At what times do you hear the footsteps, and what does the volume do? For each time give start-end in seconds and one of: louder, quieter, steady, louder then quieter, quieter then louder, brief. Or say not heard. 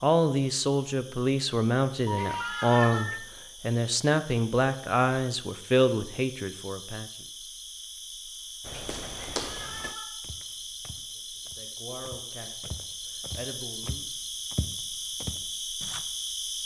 8.6-16.1 quieter then louder.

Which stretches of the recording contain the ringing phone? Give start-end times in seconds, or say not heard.
2.0-3.1.